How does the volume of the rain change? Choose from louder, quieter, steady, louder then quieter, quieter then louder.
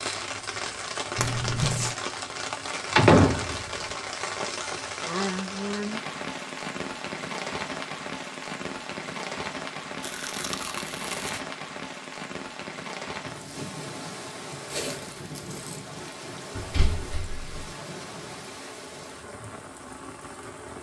quieter.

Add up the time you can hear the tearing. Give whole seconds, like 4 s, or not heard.
3 s.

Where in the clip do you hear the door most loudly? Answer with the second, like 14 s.
3 s.